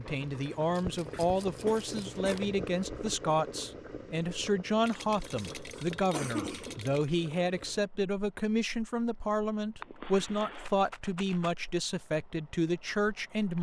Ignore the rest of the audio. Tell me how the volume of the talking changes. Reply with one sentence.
The loudness of the talking stays about the same.